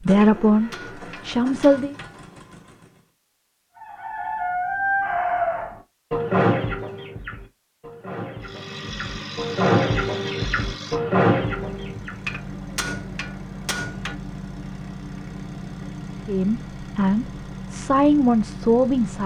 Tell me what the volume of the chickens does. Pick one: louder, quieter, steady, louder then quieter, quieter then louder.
quieter then louder.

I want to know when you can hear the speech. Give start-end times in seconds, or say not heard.
0.0-1.9, 16.2-19.2.